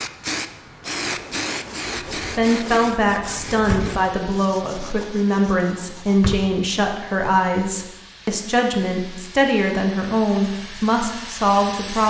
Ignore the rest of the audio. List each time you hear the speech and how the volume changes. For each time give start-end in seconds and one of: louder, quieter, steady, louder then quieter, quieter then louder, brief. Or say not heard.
2.2-12.0 steady.